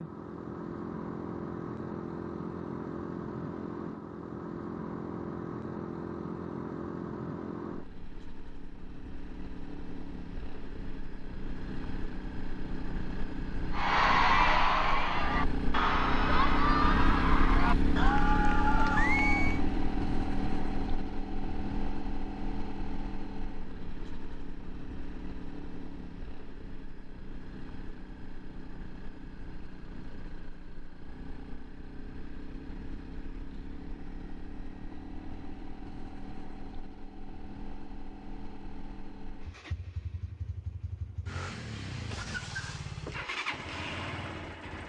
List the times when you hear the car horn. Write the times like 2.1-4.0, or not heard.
not heard.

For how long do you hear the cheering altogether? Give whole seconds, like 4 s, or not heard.
6 s.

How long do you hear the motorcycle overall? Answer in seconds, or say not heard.
45 s.